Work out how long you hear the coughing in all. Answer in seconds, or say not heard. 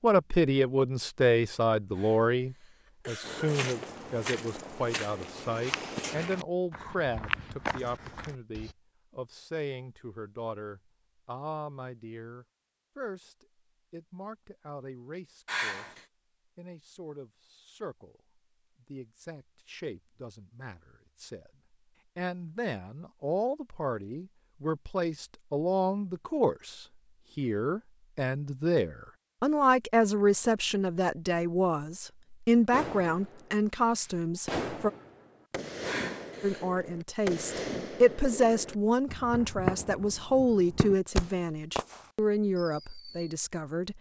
3 s.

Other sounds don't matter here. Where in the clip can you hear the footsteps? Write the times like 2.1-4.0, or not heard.
3.2-8.8.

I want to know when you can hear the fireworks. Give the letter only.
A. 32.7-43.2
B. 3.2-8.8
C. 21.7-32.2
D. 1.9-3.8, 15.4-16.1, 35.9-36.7
A.